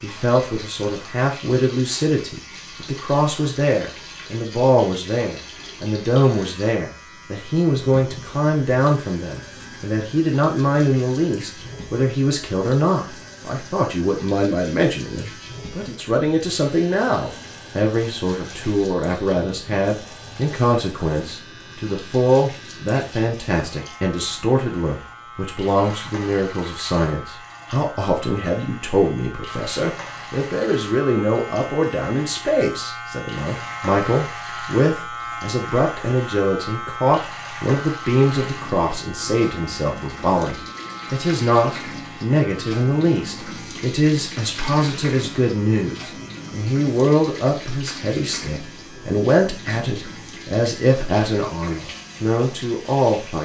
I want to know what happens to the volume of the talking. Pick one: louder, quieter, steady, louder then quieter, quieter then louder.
steady.